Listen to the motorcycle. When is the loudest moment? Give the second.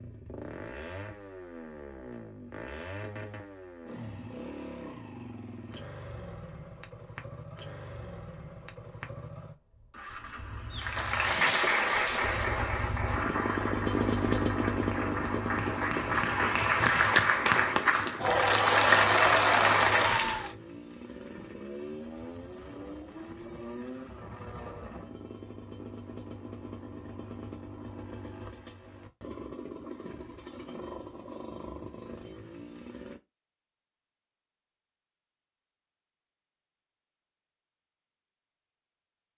14 s.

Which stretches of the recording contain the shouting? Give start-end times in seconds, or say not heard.
not heard.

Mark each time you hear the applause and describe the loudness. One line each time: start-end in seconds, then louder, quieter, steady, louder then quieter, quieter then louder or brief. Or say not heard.
10.7-20.5 quieter then louder.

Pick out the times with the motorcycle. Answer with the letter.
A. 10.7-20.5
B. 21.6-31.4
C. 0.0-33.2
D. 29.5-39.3
C.